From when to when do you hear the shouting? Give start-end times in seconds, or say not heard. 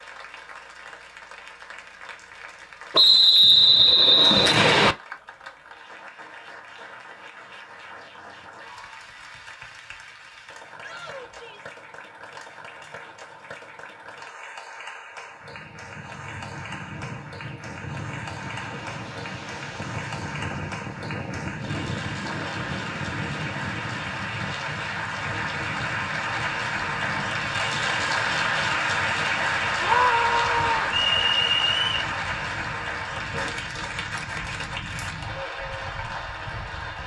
10.8-11.8, 29.8-30.9.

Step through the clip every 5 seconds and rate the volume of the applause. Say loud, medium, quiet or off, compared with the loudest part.
quiet, quiet, quiet, quiet, medium, loud, loud, medium.